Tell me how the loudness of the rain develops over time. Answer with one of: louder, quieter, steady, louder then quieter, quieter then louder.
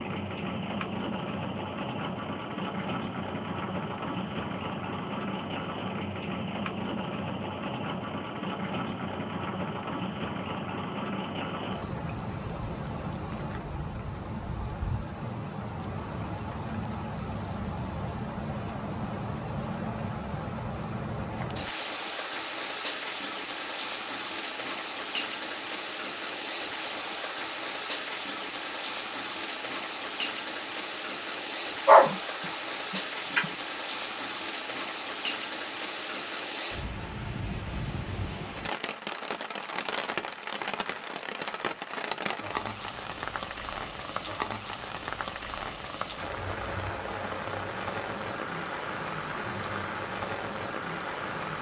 steady.